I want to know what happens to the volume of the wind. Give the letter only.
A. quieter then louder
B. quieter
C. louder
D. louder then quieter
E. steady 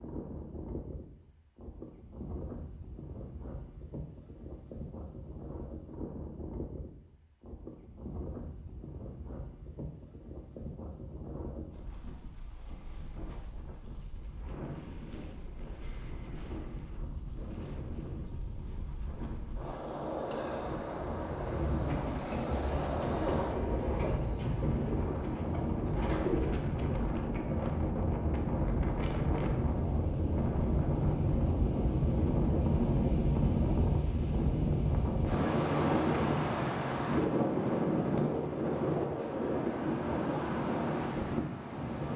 C.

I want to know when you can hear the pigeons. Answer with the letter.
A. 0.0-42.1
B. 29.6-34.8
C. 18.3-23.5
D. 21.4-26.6
D.